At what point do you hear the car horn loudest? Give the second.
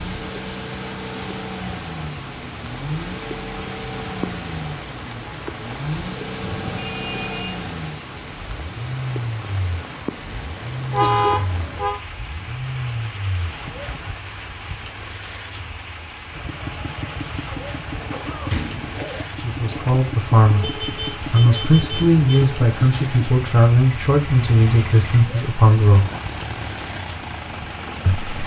11 s.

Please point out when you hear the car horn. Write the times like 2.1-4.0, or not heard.
6.4-7.6, 10.9-12.0, 20.6-22.1.